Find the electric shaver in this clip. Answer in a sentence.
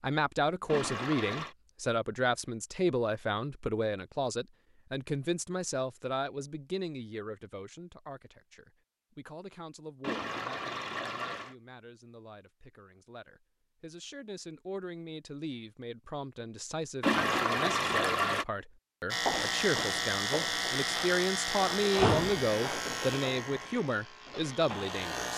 You can hear the electric shaver from 19.1 to 25.3 s.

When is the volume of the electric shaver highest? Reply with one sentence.
The loudest moment of the electric shaver is at 22 seconds.